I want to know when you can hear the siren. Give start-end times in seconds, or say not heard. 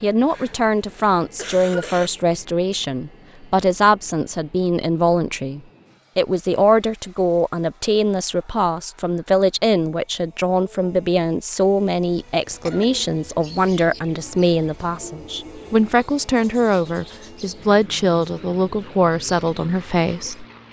not heard.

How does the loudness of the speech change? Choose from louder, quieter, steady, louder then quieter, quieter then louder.
steady.